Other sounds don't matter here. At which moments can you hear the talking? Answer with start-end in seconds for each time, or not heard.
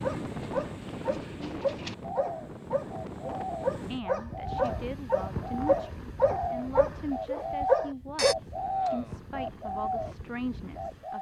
3.9-11.1.